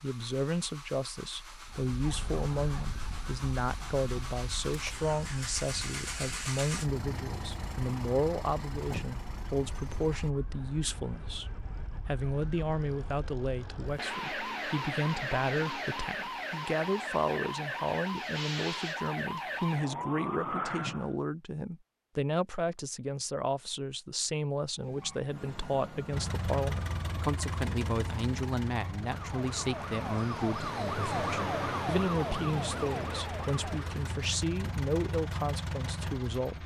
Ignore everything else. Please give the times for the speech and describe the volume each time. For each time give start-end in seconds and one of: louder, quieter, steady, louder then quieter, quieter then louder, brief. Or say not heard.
0.0-36.6 steady.